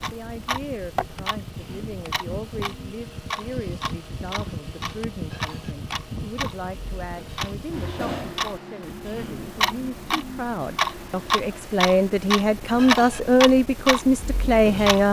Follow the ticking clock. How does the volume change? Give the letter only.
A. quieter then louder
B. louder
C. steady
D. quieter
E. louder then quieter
B.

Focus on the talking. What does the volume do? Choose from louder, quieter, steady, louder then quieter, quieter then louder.
louder.